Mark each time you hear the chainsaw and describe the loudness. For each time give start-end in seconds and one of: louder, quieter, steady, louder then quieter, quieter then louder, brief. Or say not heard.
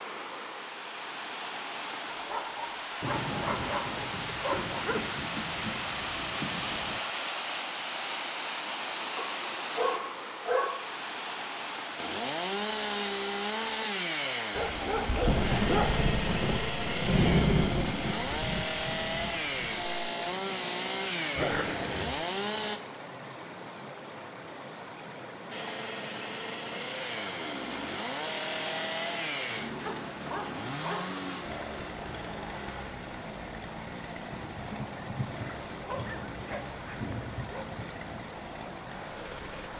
11.9-22.8 steady
25.5-39.7 quieter.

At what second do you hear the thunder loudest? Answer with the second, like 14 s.
17 s.